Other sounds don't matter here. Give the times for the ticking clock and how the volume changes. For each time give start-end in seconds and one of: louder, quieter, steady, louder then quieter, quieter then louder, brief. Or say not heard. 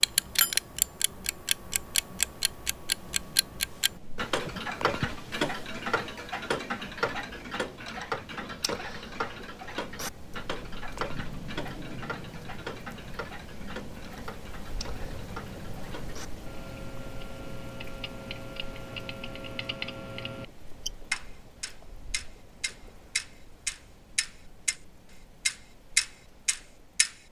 0.0-24.8 quieter then louder
25.4-27.1 brief.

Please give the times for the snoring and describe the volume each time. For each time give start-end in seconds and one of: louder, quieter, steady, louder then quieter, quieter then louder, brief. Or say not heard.
not heard.